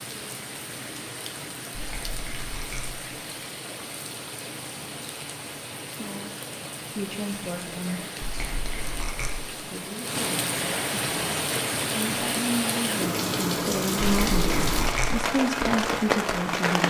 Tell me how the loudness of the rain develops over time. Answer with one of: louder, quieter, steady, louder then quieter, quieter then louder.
louder.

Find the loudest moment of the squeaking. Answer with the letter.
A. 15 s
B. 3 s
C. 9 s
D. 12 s
A.